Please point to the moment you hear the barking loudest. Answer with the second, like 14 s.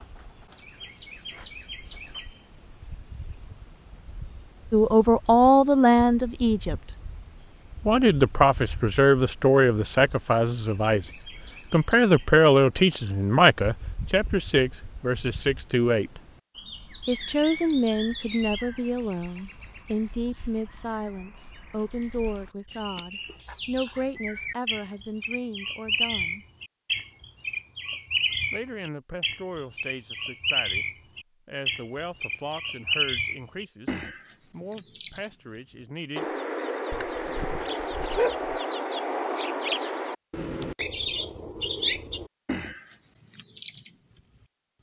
38 s.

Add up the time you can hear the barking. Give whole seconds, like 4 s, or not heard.
2 s.